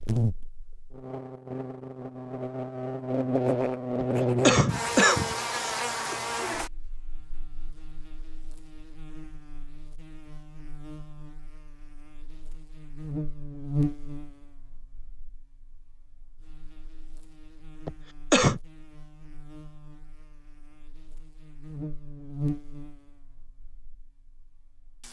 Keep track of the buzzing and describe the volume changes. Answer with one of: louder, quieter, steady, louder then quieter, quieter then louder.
quieter then louder.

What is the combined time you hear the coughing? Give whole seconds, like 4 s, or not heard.
3 s.